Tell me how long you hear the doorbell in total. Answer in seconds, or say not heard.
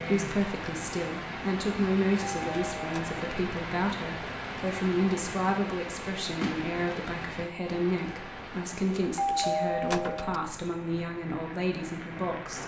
2 s.